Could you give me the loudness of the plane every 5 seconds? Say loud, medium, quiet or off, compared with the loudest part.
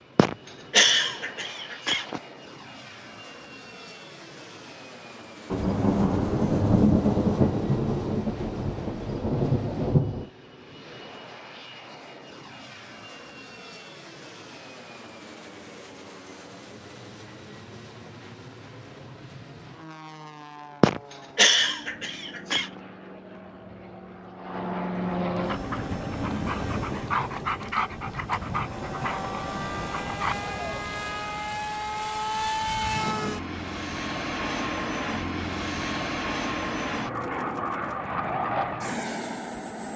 quiet, quiet, quiet, quiet, medium, loud, loud, loud.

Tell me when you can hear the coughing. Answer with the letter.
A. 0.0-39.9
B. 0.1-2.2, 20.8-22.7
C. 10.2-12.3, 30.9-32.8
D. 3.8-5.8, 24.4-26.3
B.